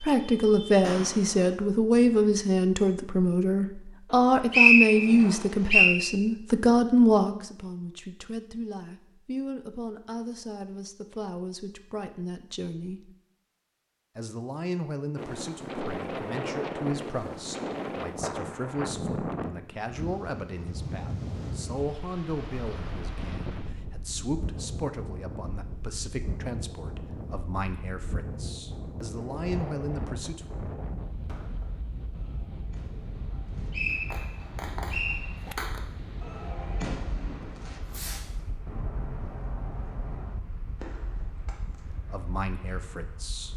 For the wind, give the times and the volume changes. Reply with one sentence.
You can hear the wind from 15.2 to 43.5 s, getting quieter.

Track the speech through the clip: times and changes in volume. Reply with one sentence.
The speech can be heard from 0.0 to 13.1 s, getting quieter; from 14.2 to 30.5 s, at a steady volume; and briefly from 41.8 to 43.5 s.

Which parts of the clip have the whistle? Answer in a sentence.
The whistle can be heard from 4.1 to 5.9 s and from 33.3 to 35.2 s.